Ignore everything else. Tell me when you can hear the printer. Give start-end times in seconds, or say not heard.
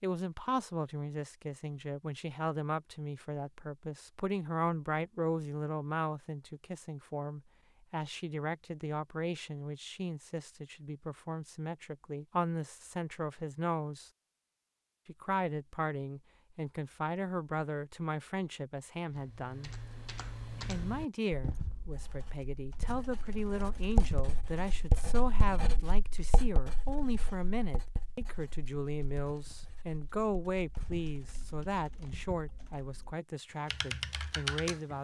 not heard.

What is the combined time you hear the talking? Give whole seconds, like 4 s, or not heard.
33 s.